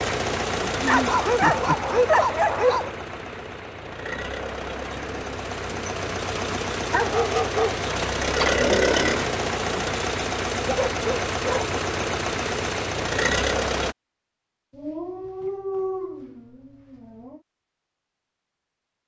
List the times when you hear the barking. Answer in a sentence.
The barking can be heard from 0.8 to 2.9 s, from 6.9 to 7.8 s, from 10.7 to 11.7 s and from 14.7 to 17.4 s.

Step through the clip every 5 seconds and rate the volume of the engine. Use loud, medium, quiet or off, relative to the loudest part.
medium, loud, loud, off.